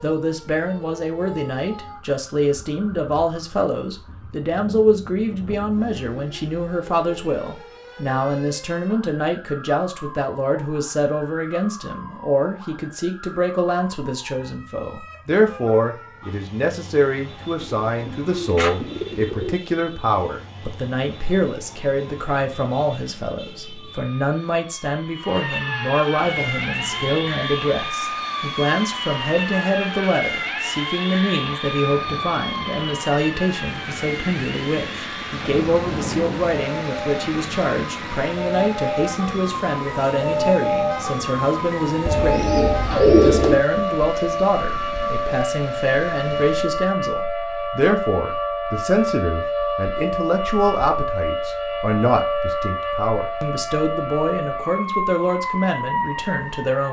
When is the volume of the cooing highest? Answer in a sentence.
The volume of the cooing peaks at 43 seconds.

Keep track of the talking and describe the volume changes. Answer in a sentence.
The loudness of the talking stays about the same.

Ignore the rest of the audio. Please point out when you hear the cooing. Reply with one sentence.
You can hear the cooing from 17.6 to 19.6 s and from 42.0 to 43.6 s.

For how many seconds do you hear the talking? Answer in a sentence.
You can hear the talking for 57 seconds altogether.